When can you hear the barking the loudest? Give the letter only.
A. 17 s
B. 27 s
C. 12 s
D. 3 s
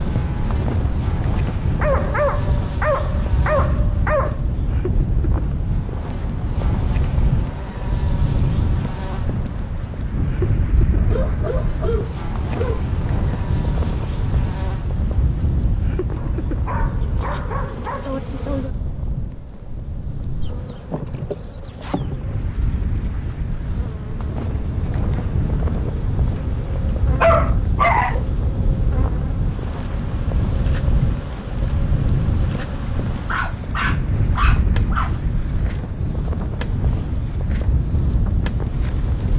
B.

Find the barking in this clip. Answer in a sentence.
You can hear the barking from 1.8 to 4.4 s, from 10.9 to 12.8 s, from 16.1 to 18.1 s, from 26.4 to 28.2 s and from 33.2 to 35.1 s.